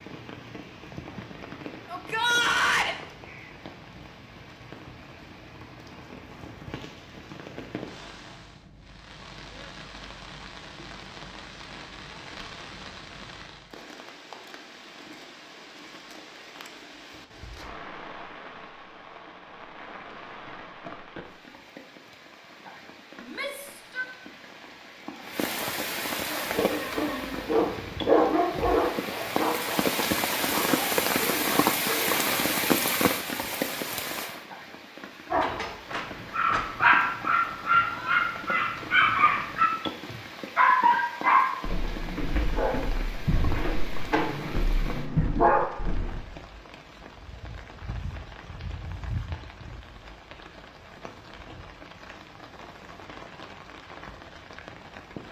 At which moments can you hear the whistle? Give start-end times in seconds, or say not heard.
not heard.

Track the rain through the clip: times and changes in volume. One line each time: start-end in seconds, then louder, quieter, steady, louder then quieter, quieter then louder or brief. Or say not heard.
0.0-55.2 louder then quieter.